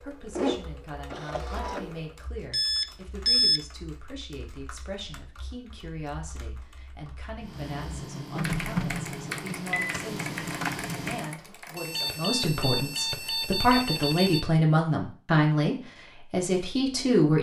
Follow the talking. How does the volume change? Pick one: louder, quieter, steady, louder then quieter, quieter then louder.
louder.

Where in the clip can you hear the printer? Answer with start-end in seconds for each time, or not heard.
0.0-2.1, 7.4-11.3.